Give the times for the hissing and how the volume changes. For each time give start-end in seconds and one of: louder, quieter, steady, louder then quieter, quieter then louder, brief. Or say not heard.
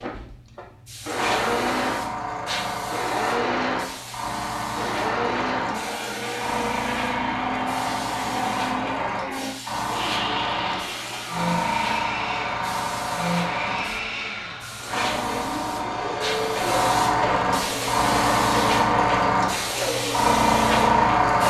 0.0-21.4 louder.